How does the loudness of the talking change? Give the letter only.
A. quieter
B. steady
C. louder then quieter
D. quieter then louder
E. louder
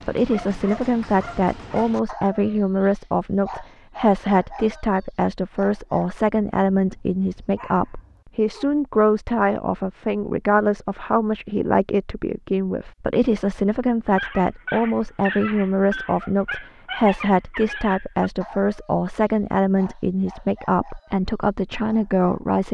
B.